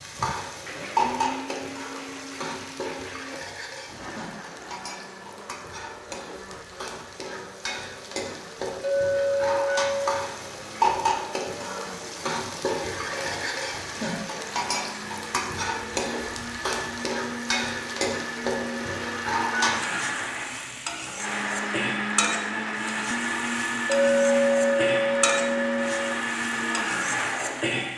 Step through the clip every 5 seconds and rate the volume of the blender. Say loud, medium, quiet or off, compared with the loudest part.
medium, quiet, quiet, medium, loud, loud.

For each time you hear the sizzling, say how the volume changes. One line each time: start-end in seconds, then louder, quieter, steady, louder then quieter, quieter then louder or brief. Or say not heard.
0.0-27.9 steady.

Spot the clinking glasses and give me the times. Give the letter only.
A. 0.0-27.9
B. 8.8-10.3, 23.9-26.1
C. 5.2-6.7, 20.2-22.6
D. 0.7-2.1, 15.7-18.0
B.